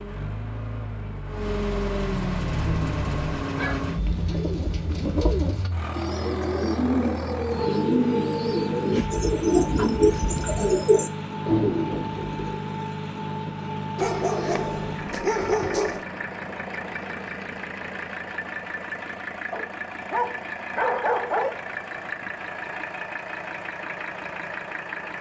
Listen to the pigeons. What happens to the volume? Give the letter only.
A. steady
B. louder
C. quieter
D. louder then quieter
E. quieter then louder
B.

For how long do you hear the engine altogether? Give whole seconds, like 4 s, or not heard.
25 s.